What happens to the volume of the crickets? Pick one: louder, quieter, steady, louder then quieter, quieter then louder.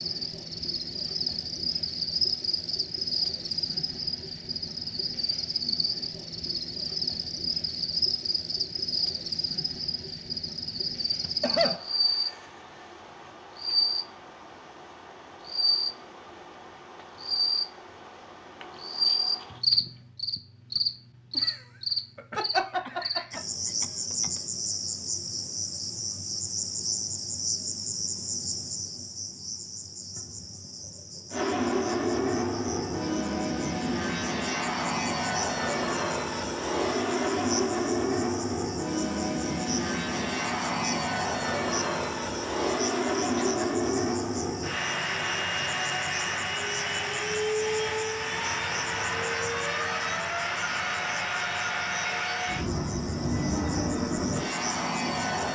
quieter.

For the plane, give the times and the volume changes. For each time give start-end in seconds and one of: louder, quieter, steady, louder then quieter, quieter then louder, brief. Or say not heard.
31.3-55.4 steady.